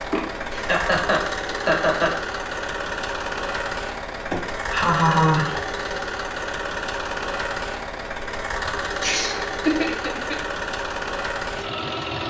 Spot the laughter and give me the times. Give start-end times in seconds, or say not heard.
0.1-2.1, 4.3-5.6, 9.0-10.3.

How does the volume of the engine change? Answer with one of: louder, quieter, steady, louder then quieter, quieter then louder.
steady.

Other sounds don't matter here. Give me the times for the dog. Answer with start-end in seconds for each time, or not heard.
not heard.